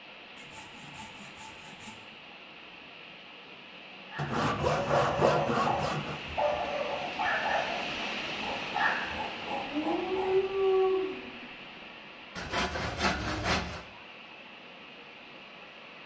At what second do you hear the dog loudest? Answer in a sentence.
The loudest moment of the dog is at 11 seconds.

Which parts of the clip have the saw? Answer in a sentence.
The saw can be heard from 0.3 to 2.0 s, from 4.2 to 6.2 s, from 8.4 to 10.3 s and from 12.3 to 13.8 s.